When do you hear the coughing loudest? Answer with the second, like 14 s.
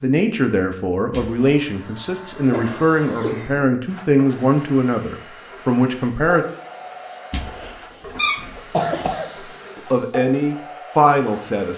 9 s.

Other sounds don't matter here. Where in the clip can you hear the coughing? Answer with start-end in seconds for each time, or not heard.
2.5-3.7, 8.6-9.3.